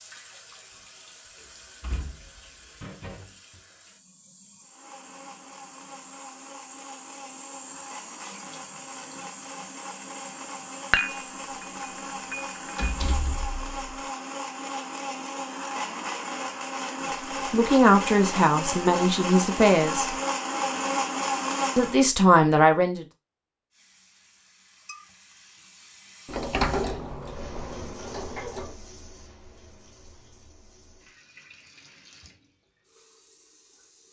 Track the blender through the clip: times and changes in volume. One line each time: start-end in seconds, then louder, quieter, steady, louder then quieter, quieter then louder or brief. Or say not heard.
4.6-22.0 louder.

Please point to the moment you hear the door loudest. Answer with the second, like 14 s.
27 s.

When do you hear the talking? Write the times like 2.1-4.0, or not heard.
17.5-20.1, 21.8-23.1.